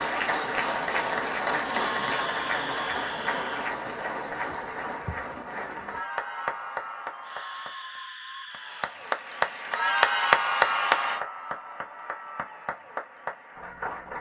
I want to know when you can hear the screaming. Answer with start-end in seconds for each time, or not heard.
1.8-3.7, 7.1-9.0.